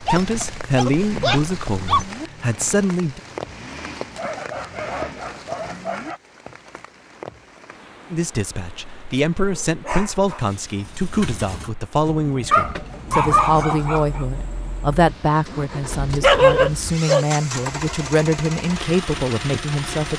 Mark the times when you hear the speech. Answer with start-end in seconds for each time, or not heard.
0.0-3.2, 8.1-20.1.